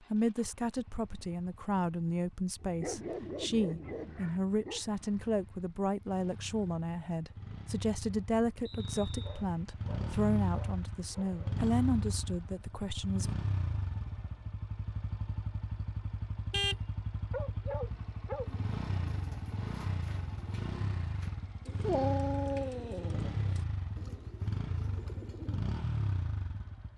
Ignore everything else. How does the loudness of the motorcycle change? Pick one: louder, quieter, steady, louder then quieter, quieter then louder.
louder.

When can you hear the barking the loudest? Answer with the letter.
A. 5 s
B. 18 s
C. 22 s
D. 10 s
C.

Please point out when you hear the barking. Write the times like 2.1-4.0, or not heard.
2.5-4.8, 9.2-11.7, 17.3-18.5, 21.8-23.3.